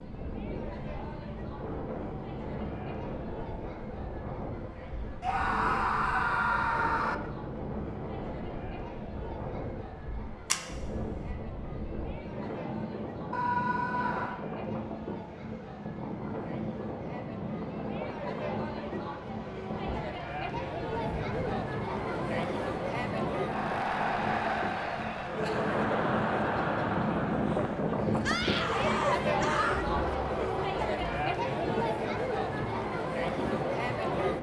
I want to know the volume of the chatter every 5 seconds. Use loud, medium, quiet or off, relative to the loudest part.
quiet, quiet, quiet, medium, loud, loud, loud.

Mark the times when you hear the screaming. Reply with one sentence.
The screaming can be heard from 5.2 to 7.2 s, from 13.3 to 14.4 s and from 28.2 to 29.9 s.